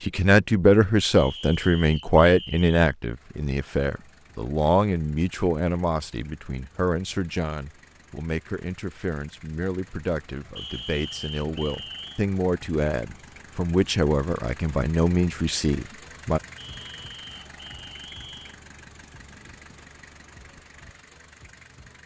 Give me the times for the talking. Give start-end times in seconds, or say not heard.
0.0-16.4.